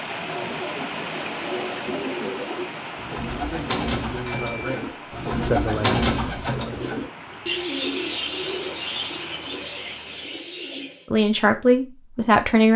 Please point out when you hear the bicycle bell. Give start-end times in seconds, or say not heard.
4.2-4.8.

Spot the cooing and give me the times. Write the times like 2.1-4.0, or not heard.
0.1-11.1.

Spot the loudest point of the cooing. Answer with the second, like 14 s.
6 s.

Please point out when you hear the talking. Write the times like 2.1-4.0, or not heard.
3.5-6.1, 11.1-12.7.